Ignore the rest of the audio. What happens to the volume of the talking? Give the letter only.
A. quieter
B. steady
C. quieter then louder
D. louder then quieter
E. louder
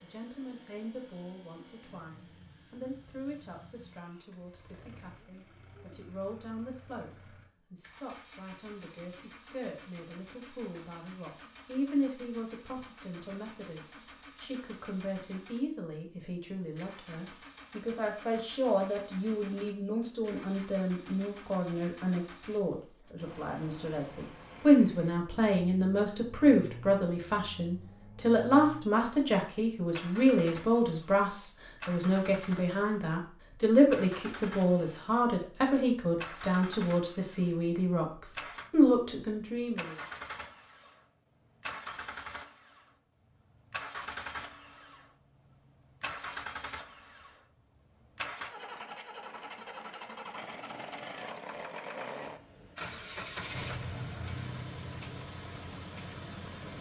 E.